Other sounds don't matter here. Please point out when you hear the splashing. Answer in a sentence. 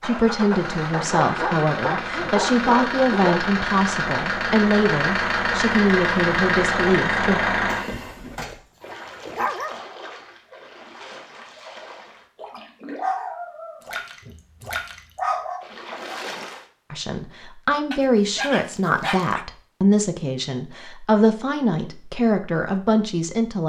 The splashing can be heard from 8.8 to 16.6 s.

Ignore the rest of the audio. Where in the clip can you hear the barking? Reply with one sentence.
You can hear the barking from 0.9 to 3.5 s, from 7.7 to 9.8 s, from 12.9 to 15.7 s and from 17.9 to 19.4 s.